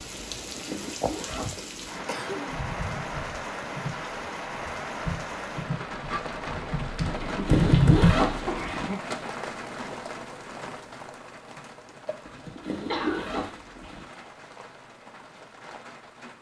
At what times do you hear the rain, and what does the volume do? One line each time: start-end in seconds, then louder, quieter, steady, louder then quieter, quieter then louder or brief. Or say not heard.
0.0-16.3 quieter.